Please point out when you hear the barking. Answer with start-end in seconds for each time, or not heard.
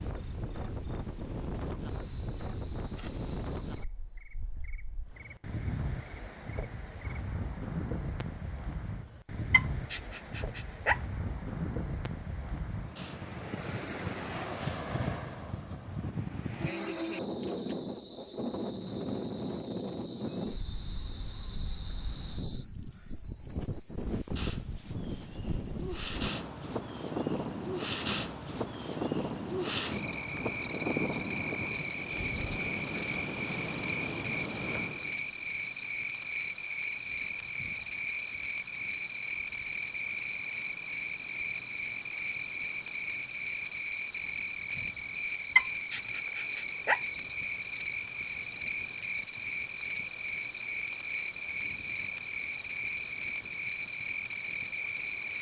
9.5-11.0, 45.5-47.0.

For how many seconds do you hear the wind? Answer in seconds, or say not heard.
55 s.